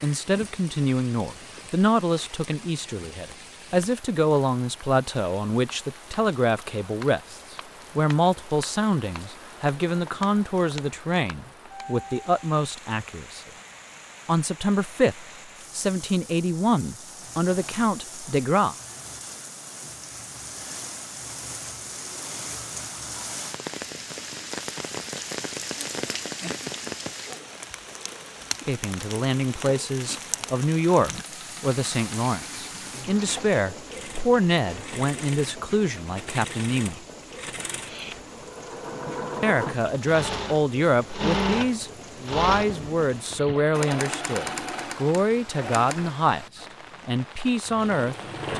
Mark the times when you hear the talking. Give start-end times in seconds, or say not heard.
0.0-13.4, 14.2-18.8, 28.6-37.0, 39.4-48.5.